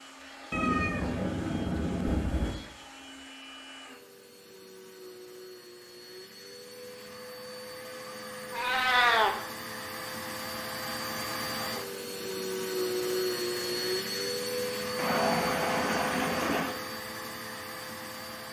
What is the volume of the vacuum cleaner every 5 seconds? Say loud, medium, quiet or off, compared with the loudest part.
quiet, medium, loud, loud.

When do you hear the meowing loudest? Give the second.
9 s.